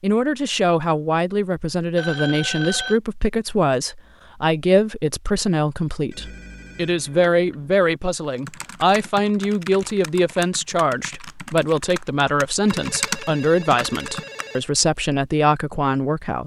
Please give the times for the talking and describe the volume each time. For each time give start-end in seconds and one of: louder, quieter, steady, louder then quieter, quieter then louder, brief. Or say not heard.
0.0-16.4 steady.